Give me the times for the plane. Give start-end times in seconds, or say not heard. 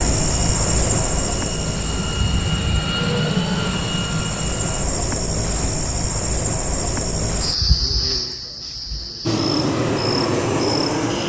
0.0-4.8, 9.2-11.2.